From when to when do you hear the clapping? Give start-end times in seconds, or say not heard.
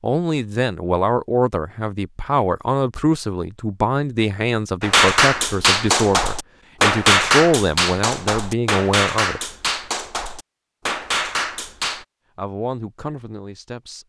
4.8-12.1.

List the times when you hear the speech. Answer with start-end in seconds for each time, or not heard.
0.0-9.4, 12.3-14.0.